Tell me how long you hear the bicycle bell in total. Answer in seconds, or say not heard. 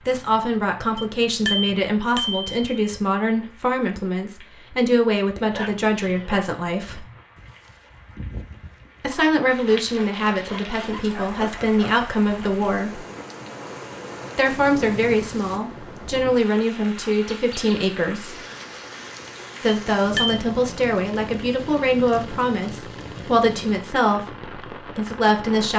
2 s.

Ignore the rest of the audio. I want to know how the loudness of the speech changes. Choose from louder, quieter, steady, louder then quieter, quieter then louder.
steady.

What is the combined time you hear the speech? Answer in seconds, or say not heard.
21 s.